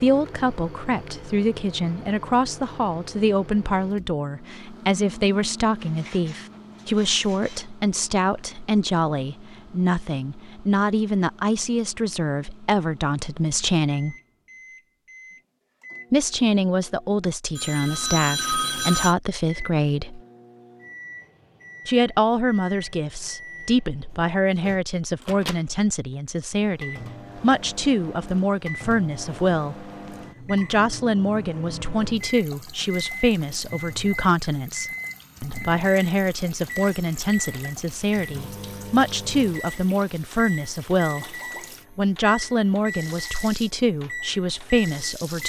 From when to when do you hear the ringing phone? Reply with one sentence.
You can hear the ringing phone from 17.6 to 19.1 s.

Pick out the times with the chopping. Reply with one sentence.
You can't hear the chopping here.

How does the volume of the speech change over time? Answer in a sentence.
The loudness of the speech stays about the same.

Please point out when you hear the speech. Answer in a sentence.
You can hear the speech from 0.0 to 14.2 s, from 16.1 to 20.2 s, from 21.9 to 29.9 s, from 30.4 to 41.4 s and from 42.0 to 45.4 s.